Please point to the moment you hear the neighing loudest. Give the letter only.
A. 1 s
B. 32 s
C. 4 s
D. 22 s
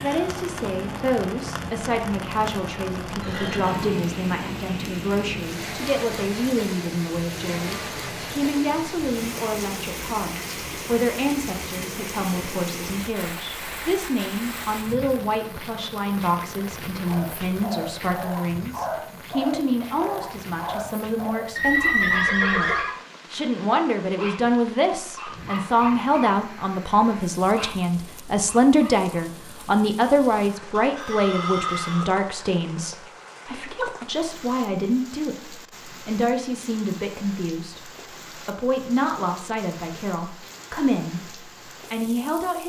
D.